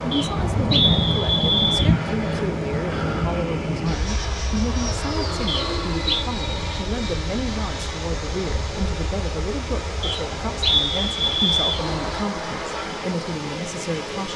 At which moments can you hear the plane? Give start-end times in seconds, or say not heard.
0.0-12.2.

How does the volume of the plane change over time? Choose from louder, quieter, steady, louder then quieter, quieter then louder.
quieter.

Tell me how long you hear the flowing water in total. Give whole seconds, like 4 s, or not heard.
14 s.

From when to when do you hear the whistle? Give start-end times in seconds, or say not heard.
0.1-1.9, 5.5-6.2, 10.0-11.8.